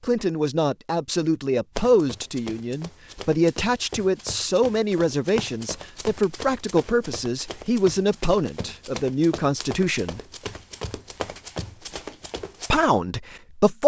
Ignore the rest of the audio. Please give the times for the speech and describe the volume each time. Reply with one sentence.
You can hear the speech from 0.0 to 10.2 s, at a steady volume; and briefly from 12.7 to 13.8 s.